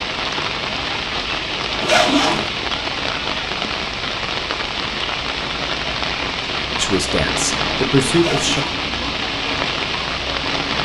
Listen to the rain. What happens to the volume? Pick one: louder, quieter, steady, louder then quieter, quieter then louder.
steady.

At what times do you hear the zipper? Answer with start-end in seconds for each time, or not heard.
1.8-2.5, 8.2-8.8.